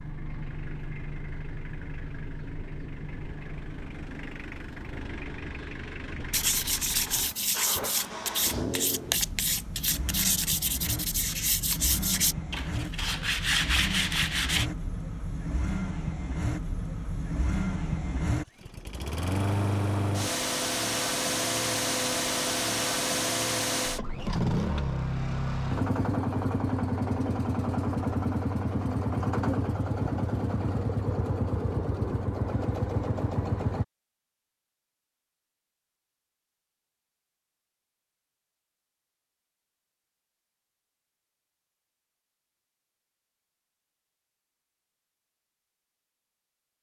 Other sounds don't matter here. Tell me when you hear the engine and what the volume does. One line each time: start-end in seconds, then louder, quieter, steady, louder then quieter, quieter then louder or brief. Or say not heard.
0.0-33.9 louder.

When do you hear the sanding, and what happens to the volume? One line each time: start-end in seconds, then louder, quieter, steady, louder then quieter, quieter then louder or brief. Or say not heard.
6.3-14.7 steady.